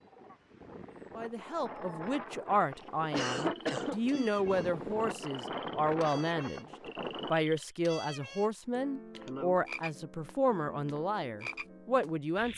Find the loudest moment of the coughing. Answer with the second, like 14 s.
3 s.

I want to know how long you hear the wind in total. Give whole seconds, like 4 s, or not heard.
7 s.